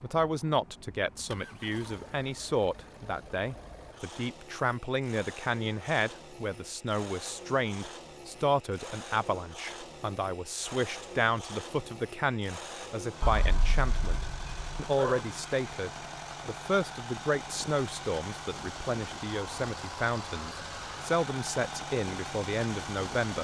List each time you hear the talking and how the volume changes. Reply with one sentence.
The talking can be heard from 0.0 to 23.3 s, at a steady volume.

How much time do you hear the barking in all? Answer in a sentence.
You can hear the barking for 2 seconds altogether.